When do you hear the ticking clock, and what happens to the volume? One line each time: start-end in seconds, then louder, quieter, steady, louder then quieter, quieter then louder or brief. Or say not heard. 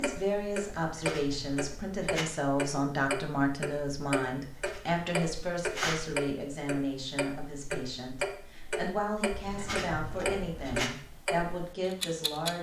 0.0-12.5 steady.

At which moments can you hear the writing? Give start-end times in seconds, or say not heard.
0.8-2.2, 4.5-6.0, 9.3-10.9.